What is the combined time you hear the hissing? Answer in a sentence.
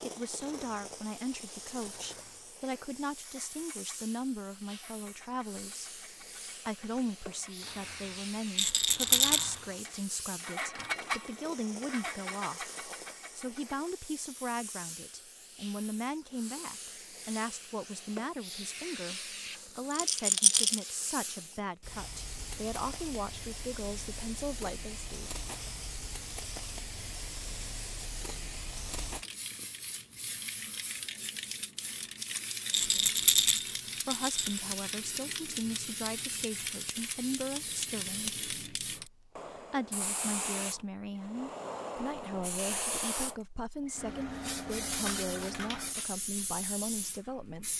You can hear the hissing for 48 seconds altogether.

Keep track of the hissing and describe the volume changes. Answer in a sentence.
The volume of the hissing goes up.